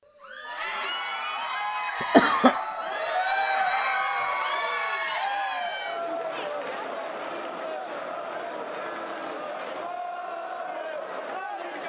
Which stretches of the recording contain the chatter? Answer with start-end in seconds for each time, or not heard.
0.0-11.8.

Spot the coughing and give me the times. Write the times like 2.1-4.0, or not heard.
2.0-2.5.